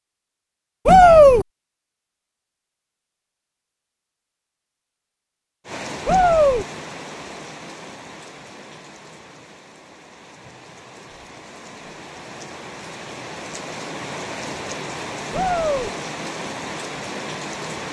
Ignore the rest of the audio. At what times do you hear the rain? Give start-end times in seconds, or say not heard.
5.7-17.8.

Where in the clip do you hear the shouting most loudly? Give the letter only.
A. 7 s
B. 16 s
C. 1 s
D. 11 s
C.